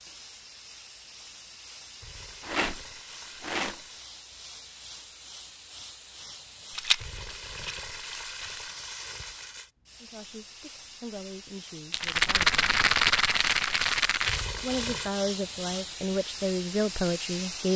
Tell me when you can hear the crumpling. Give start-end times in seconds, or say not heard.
2.0-4.0, 7.0-9.7, 14.2-15.1.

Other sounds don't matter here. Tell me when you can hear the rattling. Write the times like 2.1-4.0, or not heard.
2.4-3.9, 6.8-8.6, 11.9-14.4.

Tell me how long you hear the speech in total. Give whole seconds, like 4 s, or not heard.
6 s.